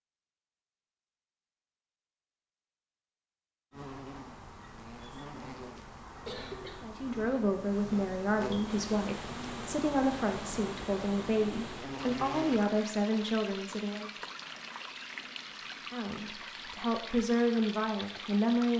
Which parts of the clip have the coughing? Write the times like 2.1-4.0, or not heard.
6.2-6.9.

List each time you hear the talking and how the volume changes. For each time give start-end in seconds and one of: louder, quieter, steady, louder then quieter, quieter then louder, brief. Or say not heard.
6.8-14.1 steady
15.9-18.7 brief.